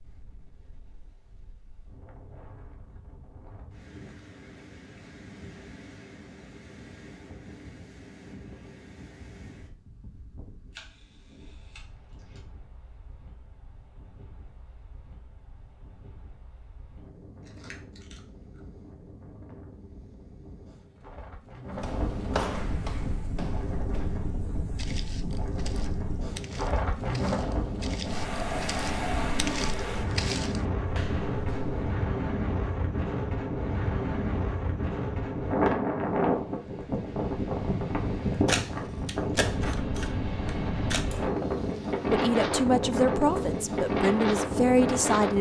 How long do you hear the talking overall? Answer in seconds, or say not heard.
3 s.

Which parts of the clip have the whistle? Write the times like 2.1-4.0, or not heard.
not heard.